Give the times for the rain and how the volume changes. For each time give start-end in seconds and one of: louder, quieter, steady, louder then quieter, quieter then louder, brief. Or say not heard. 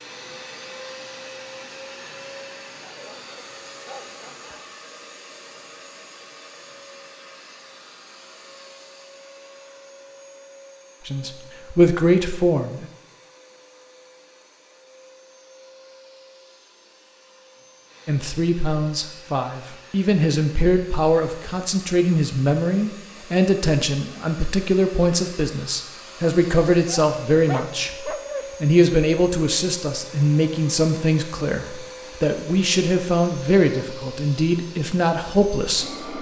not heard.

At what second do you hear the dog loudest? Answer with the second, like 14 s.
28 s.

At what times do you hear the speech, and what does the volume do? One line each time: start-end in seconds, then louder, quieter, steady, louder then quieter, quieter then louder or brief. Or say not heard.
11.1-12.9 brief
18.1-36.1 steady.